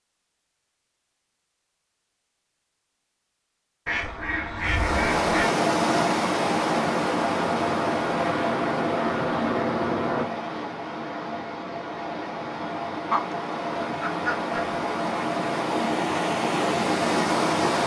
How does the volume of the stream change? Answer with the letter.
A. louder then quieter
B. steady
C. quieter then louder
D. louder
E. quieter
C.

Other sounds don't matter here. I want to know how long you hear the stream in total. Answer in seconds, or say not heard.
13 s.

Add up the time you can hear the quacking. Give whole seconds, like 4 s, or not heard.
3 s.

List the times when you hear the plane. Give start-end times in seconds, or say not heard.
6.7-10.2.